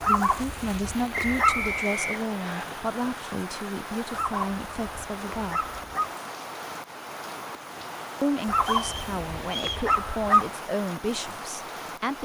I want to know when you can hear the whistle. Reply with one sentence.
The whistle can be heard from 1.1 to 2.6 s and from 8.6 to 9.9 s.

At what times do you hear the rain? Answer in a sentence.
The rain can be heard from 0.0 to 12.1 s.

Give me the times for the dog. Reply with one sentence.
You can hear the dog from 0.0 to 1.8 s, from 4.1 to 6.1 s and from 8.4 to 10.5 s.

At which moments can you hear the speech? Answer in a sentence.
The speech can be heard from 0.0 to 5.7 s and from 8.2 to 12.1 s.